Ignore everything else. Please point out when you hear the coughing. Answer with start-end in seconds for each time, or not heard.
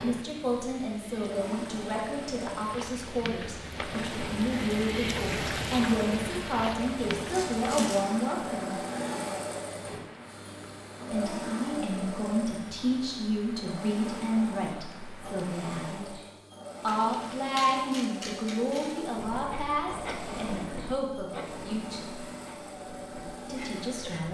not heard.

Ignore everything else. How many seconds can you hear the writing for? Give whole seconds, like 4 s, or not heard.
5 s.